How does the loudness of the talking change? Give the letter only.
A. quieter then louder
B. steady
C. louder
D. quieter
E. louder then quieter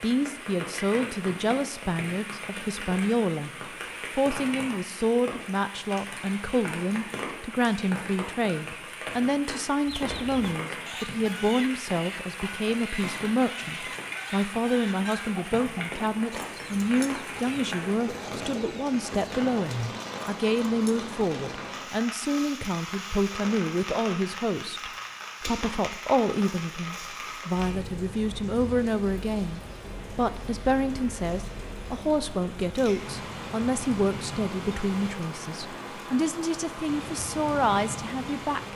B.